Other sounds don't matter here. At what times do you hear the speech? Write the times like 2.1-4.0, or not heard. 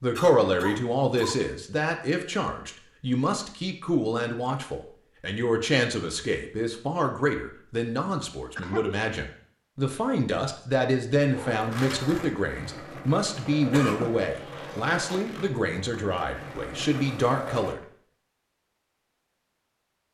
0.0-17.8.